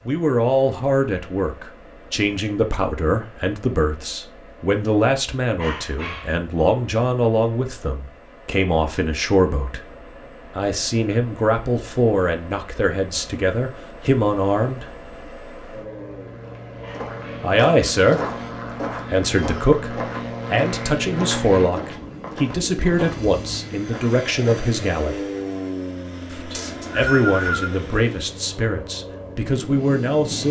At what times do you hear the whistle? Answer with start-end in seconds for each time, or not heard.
26.5-27.7.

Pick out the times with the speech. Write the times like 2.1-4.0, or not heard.
0.1-9.8, 10.6-14.8, 17.4-18.2, 19.1-25.2, 26.3-30.4.